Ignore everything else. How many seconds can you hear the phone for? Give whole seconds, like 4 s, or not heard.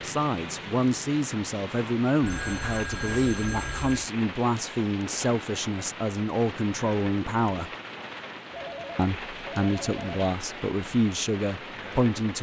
4 s.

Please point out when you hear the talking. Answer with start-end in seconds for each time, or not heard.
0.0-7.7, 8.9-12.3.